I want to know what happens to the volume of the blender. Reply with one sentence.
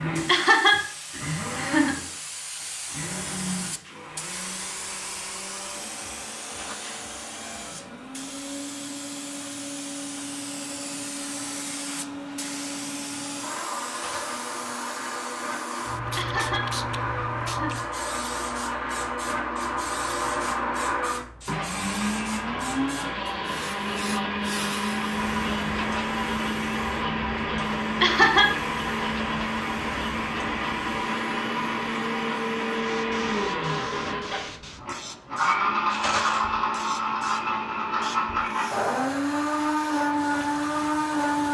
The volume of the blender goes up.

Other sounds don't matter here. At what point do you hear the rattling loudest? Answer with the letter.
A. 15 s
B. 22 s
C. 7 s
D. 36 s
D.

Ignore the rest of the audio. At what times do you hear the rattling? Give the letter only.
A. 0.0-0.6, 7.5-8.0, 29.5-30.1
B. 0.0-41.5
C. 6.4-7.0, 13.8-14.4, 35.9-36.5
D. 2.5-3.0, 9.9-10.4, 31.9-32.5
C.